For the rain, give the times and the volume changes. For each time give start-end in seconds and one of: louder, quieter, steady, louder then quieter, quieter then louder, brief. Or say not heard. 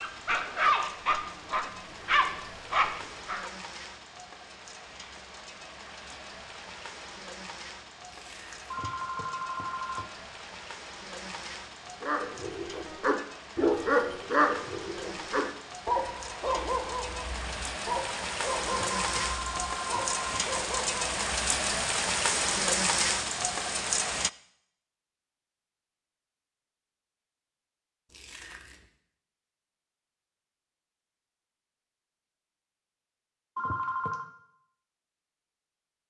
0.0-24.3 louder.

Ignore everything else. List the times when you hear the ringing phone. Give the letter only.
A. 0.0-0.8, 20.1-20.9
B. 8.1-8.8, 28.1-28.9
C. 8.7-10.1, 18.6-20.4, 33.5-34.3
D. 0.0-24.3
C.